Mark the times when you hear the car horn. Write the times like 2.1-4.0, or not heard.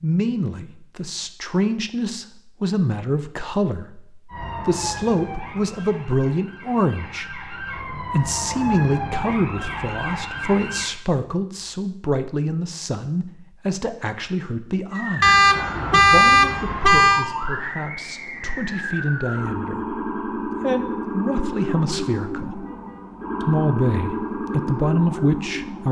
15.2-17.2.